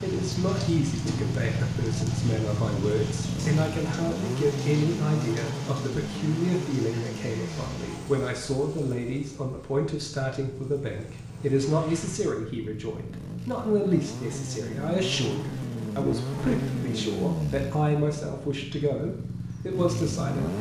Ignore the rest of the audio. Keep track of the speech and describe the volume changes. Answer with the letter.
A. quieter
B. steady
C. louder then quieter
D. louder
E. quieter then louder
B.